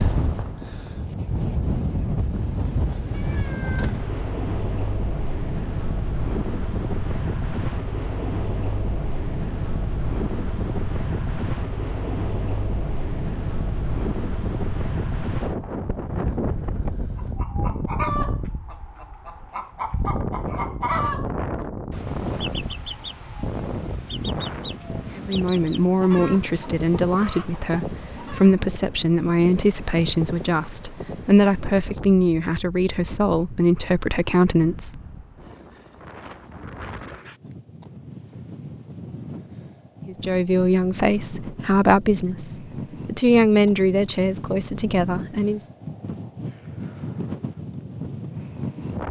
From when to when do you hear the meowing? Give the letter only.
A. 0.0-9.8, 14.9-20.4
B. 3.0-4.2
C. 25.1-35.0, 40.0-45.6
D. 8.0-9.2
B.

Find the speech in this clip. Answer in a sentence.
The speech can be heard from 25.1 to 35.0 s and from 40.0 to 45.6 s.